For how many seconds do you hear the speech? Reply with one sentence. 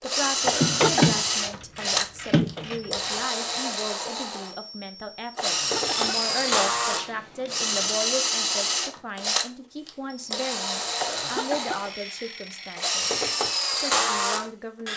You can hear the speech for 15 seconds altogether.